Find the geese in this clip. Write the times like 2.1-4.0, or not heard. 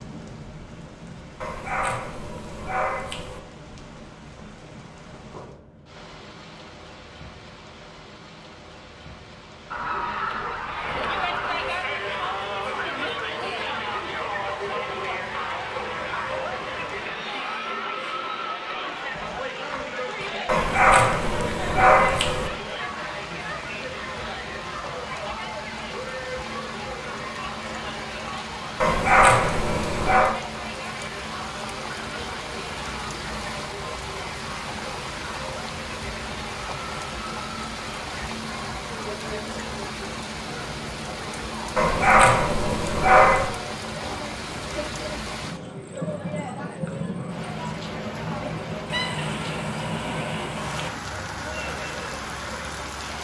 9.7-11.7, 48.9-50.9.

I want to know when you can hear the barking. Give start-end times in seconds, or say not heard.
1.4-3.4, 20.4-22.5, 28.8-30.4, 41.8-43.5.